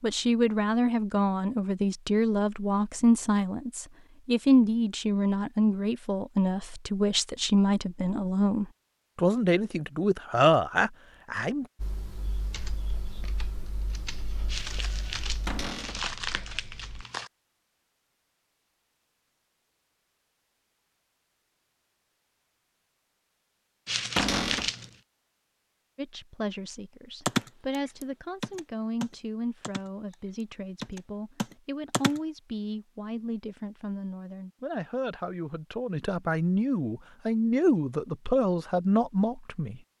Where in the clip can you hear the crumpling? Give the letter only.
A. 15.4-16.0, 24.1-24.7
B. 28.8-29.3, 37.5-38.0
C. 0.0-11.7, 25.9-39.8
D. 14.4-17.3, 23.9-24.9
D.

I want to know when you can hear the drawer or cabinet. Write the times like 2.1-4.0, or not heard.
15.4-16.0, 24.1-24.7.